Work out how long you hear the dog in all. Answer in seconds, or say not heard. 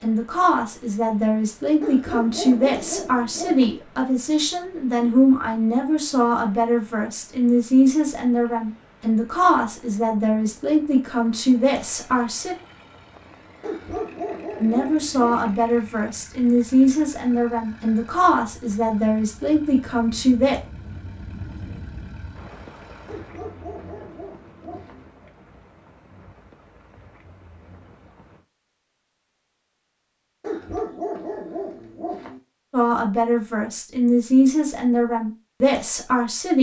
8 s.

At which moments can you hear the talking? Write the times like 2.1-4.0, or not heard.
0.0-12.6, 14.6-20.6, 32.7-36.5.